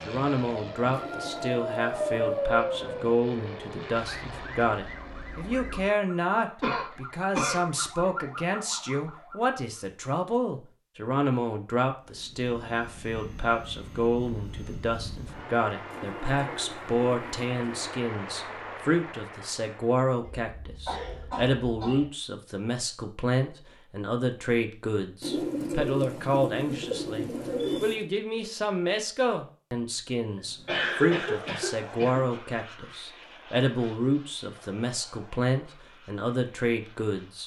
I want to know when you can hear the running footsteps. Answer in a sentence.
The running footsteps can't be heard in this clip.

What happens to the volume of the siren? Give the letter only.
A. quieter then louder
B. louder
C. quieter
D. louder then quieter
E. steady
A.